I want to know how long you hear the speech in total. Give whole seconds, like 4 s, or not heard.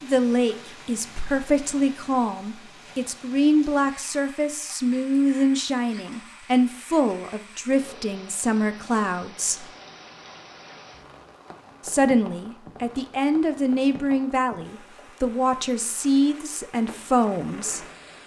16 s.